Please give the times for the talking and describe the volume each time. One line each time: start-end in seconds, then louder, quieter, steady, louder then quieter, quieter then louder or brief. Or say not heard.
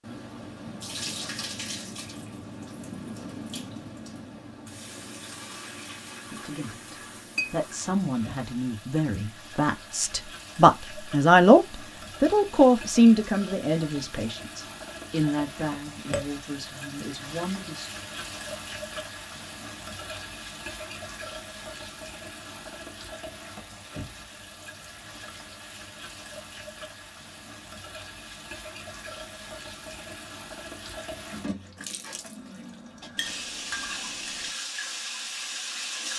6.2-17.9 louder then quieter.